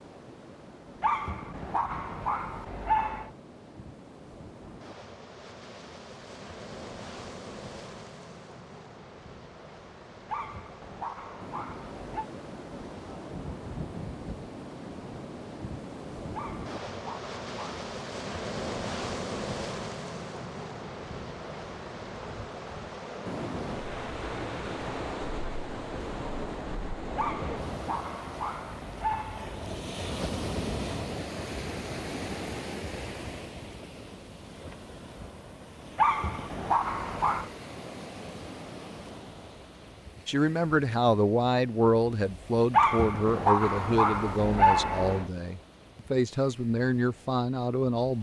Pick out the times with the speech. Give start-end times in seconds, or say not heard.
40.2-48.1.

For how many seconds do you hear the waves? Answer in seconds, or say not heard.
48 s.